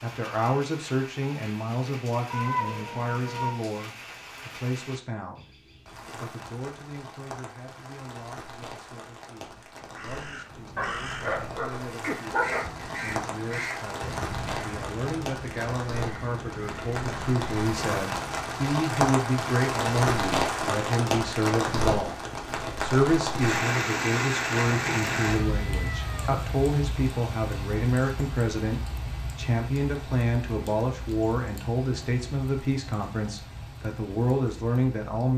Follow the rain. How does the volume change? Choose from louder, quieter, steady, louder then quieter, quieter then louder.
louder then quieter.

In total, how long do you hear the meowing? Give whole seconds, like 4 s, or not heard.
4 s.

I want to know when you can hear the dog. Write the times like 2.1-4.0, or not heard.
10.8-12.7.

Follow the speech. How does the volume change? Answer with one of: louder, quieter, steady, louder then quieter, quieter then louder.
quieter then louder.